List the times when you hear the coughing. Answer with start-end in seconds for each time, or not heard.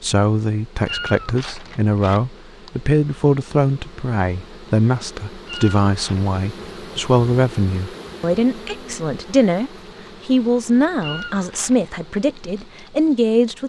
not heard.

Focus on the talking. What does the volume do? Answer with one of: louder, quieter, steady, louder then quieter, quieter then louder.
steady.